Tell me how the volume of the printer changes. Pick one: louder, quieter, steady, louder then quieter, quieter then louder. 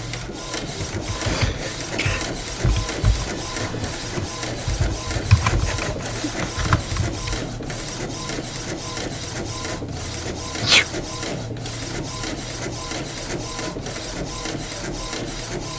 steady.